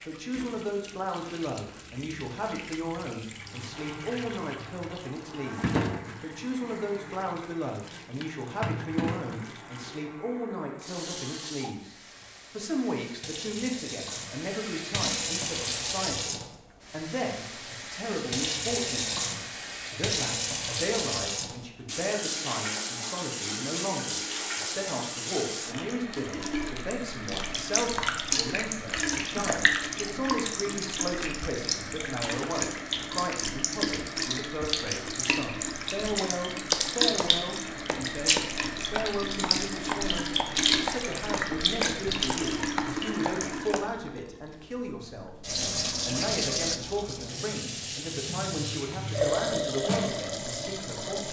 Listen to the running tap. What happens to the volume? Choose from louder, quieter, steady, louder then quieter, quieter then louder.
louder.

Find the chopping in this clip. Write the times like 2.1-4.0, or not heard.
36.7-44.2.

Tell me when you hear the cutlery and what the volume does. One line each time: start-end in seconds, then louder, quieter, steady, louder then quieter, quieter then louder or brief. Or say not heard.
not heard.